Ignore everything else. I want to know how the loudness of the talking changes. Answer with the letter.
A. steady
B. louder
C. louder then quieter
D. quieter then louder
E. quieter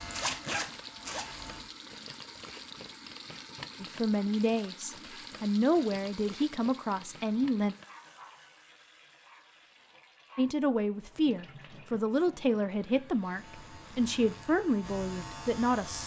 A.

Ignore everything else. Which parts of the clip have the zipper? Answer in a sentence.
The zipper can be heard from 0.1 to 1.2 s and from 13.8 to 14.5 s.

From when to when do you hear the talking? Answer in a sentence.
The talking can be heard from 3.8 to 7.8 s and from 10.3 to 16.0 s.